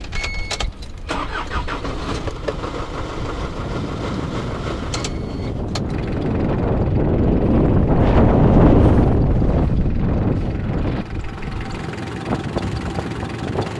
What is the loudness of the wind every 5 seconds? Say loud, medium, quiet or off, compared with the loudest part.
quiet, loud, medium.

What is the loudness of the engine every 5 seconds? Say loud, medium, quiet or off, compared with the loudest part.
loud, medium, loud.